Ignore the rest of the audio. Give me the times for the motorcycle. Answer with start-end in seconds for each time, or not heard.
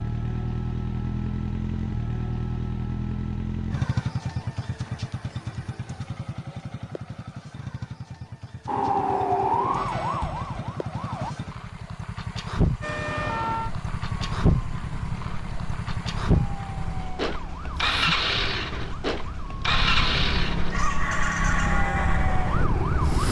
0.0-23.2.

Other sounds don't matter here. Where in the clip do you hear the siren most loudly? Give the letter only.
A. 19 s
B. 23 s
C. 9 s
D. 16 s
C.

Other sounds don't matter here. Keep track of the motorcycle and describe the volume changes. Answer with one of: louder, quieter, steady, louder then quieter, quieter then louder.
quieter then louder.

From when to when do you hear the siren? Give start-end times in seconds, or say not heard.
8.7-11.3, 12.8-23.2.